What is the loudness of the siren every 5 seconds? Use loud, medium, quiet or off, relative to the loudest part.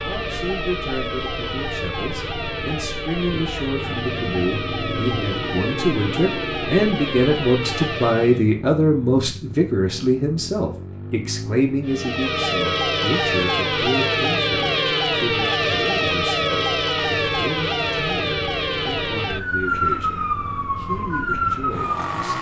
medium, medium, loud, loud, loud.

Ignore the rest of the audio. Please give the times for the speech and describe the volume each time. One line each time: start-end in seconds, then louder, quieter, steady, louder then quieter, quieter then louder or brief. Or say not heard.
0.0-22.3 louder then quieter.